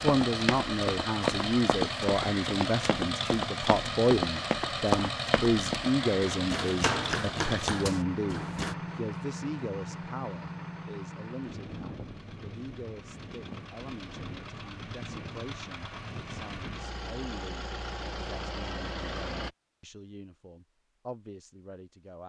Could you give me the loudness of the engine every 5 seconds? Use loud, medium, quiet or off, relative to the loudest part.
loud, loud, medium, medium, off.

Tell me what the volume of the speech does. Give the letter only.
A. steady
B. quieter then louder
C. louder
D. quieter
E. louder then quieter
D.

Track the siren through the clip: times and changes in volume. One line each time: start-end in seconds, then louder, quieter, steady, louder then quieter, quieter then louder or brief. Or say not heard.
not heard.